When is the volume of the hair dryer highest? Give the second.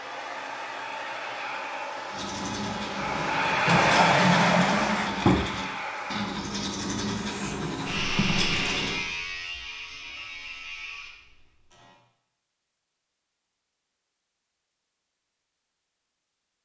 4 s.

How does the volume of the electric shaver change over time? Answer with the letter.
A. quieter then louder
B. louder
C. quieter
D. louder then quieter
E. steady
C.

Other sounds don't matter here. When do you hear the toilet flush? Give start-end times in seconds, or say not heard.
3.6-5.5.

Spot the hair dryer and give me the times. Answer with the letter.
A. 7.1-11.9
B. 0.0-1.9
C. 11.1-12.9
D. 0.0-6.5
D.